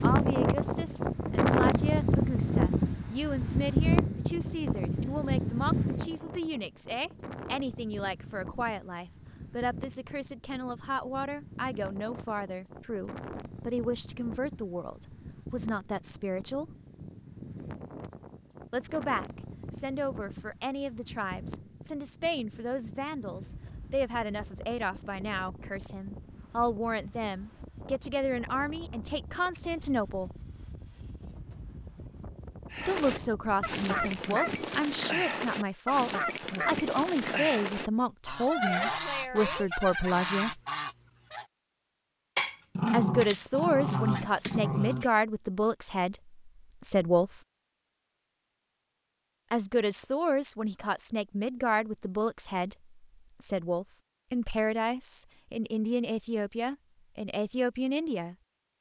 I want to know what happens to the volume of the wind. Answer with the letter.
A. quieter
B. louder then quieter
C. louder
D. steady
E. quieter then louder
A.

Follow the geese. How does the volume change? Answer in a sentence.
The loudness of the geese stays about the same.